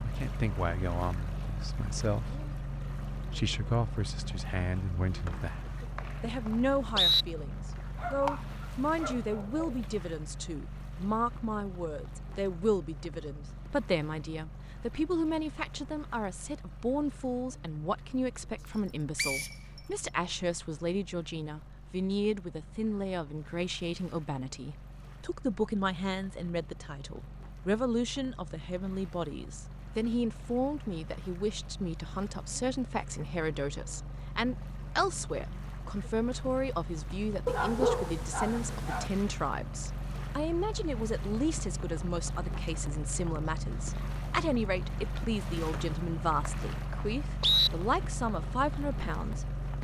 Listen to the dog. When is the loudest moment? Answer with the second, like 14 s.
38 s.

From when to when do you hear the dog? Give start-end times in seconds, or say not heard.
8.0-9.8, 37.5-39.1.